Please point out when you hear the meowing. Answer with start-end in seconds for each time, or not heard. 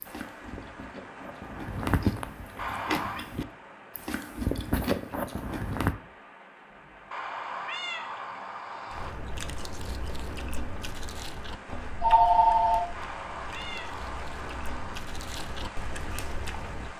2.5-3.2, 7.1-9.1, 12.9-14.9.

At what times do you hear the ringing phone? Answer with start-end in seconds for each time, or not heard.
12.0-12.8.